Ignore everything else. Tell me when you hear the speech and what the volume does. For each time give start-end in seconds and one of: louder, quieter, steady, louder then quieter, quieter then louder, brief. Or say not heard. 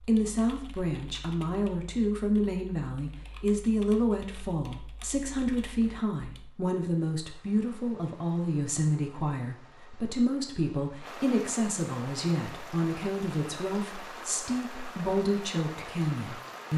0.0-16.7 steady.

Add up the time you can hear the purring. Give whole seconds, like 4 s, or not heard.
not heard.